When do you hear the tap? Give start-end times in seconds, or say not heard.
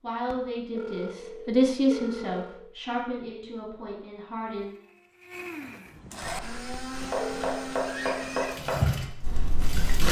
8.4-10.0.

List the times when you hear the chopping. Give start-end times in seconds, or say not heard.
6.2-10.0.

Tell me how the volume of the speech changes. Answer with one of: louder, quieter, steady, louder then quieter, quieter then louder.
louder then quieter.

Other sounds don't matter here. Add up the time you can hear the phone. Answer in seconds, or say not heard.
3 s.